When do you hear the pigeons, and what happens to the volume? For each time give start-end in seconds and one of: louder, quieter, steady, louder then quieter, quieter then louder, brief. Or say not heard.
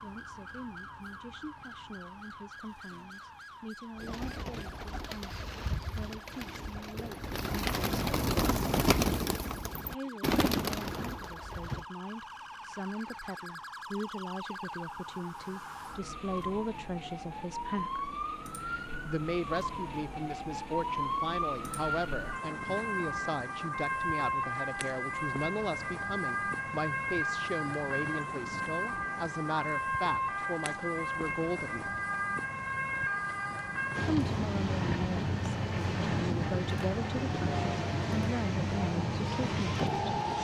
4.0-11.8 louder.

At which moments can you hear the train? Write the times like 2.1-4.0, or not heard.
33.9-40.4.